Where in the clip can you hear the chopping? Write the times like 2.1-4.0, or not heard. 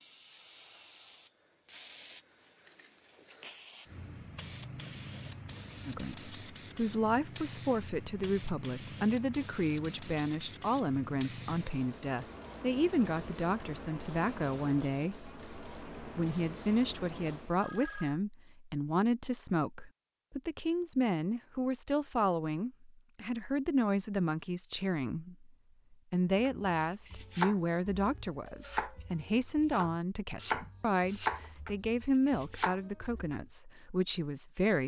26.4-33.4.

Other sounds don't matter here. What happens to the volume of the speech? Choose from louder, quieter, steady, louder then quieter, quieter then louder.
steady.